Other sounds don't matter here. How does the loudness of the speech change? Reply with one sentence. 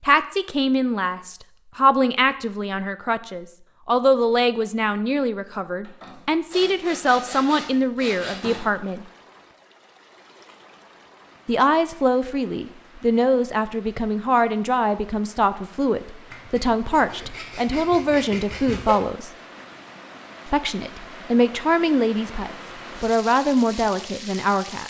The volume of the speech stays about the same.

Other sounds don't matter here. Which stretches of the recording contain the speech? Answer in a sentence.
The speech can be heard from 0.0 to 9.1 s, from 11.4 to 19.3 s and from 20.4 to 24.8 s.